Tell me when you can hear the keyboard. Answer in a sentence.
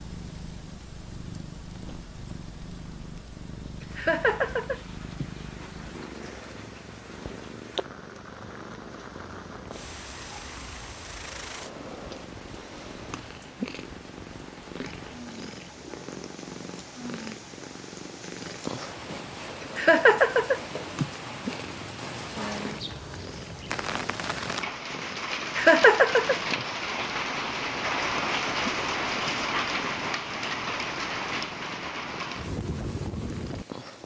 You can't hear the keyboard here.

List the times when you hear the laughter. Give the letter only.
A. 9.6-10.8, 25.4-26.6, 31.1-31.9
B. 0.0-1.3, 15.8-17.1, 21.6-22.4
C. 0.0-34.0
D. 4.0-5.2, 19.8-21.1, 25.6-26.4
D.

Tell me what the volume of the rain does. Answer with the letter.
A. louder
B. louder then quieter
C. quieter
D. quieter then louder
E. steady
A.